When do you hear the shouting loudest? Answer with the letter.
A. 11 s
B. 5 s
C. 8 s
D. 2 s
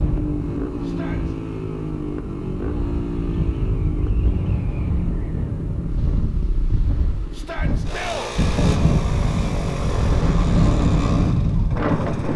C.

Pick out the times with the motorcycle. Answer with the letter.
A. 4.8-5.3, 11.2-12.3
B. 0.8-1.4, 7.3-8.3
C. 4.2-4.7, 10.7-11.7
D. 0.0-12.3
D.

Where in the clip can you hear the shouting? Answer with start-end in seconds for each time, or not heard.
0.8-1.4, 7.3-8.3.